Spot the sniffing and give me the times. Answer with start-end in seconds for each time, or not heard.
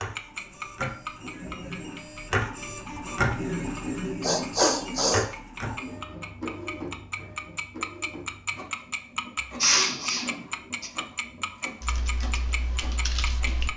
4.2-5.2, 9.6-10.9.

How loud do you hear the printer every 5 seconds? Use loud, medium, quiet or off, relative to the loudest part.
loud, medium, quiet.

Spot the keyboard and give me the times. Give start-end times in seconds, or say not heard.
11.8-13.7.